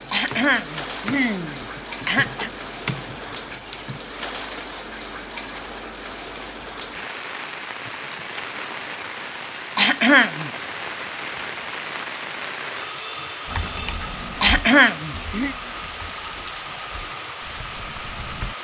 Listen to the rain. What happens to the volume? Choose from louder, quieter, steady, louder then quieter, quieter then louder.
steady.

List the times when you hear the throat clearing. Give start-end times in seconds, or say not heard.
0.1-2.5, 9.8-10.5, 14.4-15.6.